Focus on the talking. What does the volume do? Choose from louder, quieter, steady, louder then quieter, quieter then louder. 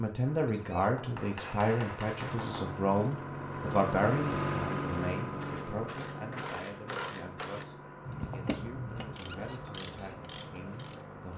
quieter.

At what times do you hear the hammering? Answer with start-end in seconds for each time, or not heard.
0.8-2.8.